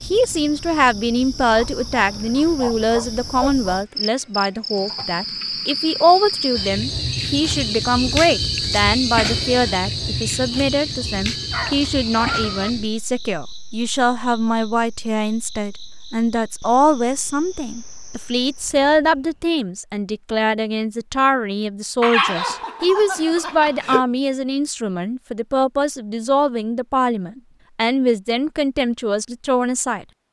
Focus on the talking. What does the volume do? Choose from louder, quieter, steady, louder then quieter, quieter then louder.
steady.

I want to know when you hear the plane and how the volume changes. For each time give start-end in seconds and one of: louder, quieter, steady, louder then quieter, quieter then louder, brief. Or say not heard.
not heard.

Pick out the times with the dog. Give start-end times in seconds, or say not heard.
1.5-3.6, 11.5-12.7, 22.0-24.0.